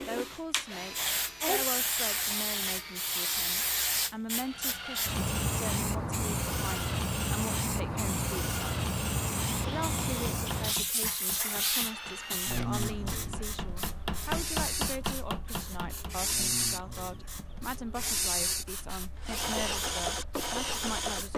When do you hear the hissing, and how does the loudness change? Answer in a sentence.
You can hear the hissing from 0.0 to 21.3 s, getting quieter.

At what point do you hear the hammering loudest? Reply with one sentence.
The loudest moment of the hammering is at 14 seconds.